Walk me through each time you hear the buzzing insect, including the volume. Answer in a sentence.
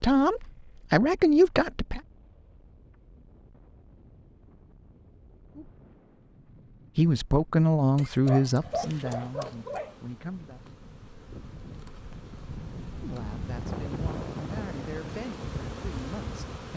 You can hear the buzzing insect from 8.7 to 16.7 s, getting louder.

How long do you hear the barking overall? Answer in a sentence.
The barking can be heard for 2 seconds in total.